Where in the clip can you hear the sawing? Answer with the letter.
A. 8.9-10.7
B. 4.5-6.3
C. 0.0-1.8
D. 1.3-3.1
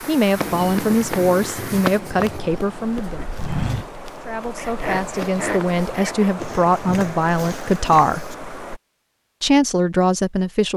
B.